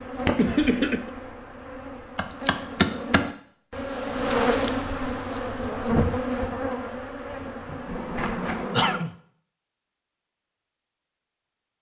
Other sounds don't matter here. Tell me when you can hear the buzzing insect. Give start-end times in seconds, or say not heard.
0.0-9.0.